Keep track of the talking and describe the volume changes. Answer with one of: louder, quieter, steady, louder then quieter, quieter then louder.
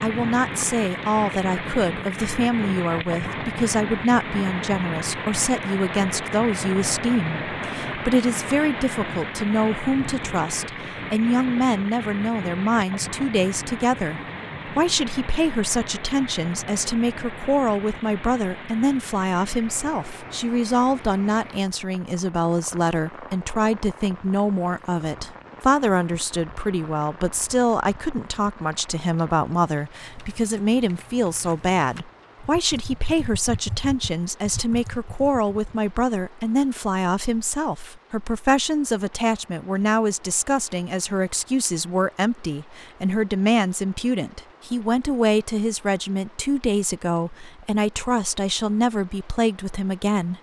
steady.